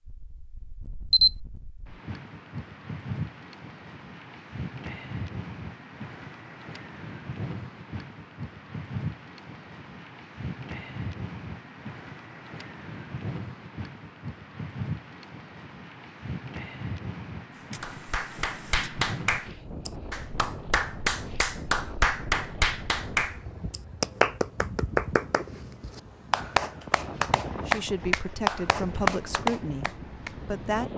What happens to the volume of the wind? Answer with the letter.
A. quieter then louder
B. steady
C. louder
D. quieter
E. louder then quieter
B.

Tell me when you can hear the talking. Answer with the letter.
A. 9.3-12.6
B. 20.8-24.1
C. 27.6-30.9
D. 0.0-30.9
C.